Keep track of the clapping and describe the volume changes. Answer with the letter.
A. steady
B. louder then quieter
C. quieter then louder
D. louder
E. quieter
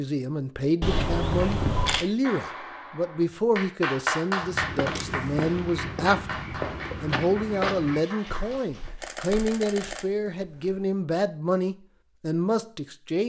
B.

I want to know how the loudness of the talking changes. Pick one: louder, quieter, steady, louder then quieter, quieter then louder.
steady.